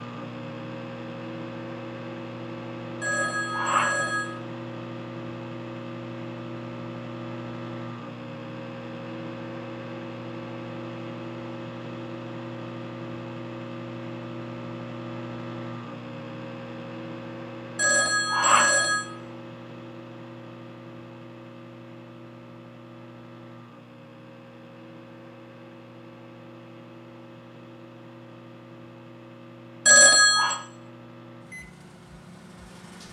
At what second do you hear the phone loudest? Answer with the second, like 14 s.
30 s.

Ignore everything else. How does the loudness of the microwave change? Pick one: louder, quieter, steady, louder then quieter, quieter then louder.
quieter.